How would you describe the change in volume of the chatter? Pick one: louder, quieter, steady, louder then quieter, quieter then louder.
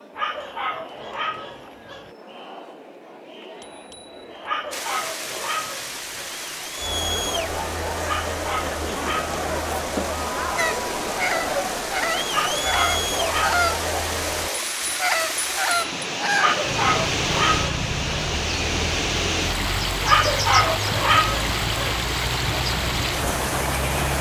louder.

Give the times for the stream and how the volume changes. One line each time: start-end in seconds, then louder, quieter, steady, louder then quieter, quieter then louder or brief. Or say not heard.
4.7-24.1 louder.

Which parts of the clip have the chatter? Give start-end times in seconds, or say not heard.
0.0-14.5.